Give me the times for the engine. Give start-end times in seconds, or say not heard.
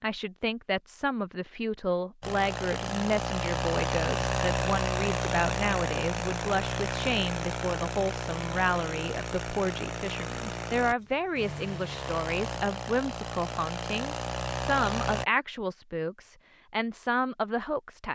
2.2-15.2.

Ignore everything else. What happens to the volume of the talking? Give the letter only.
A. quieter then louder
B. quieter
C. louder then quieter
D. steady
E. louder
D.